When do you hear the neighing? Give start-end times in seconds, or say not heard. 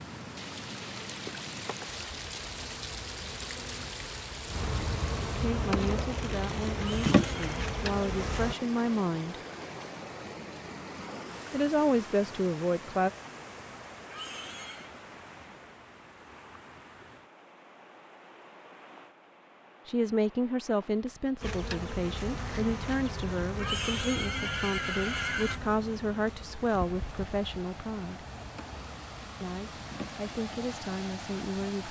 6.8-7.5, 14.1-14.9, 23.6-25.6.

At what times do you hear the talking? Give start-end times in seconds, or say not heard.
5.4-9.3, 11.5-13.1, 19.9-28.2, 29.4-31.8.